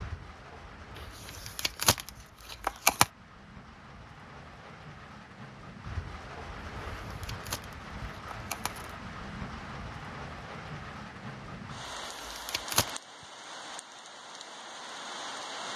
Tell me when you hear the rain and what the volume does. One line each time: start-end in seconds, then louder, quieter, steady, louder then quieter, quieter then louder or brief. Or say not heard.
0.0-15.7 louder.